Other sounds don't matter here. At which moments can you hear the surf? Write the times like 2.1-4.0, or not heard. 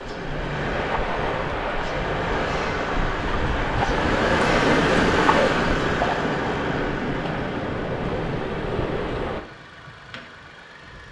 0.0-9.4.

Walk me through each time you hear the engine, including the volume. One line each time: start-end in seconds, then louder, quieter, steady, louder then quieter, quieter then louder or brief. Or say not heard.
0.0-11.0 louder then quieter.